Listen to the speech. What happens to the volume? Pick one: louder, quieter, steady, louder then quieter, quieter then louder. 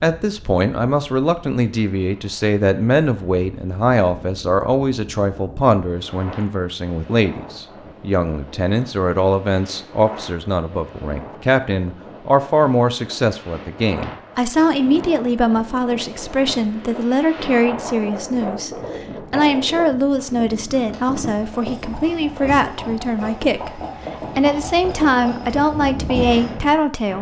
steady.